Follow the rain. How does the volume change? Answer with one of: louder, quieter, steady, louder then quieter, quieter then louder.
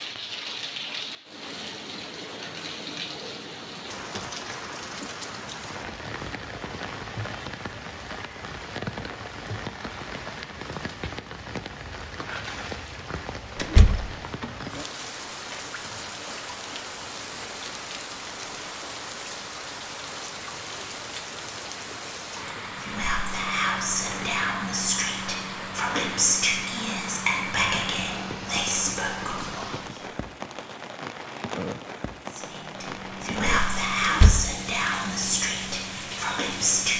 steady.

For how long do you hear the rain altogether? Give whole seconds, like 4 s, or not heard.
37 s.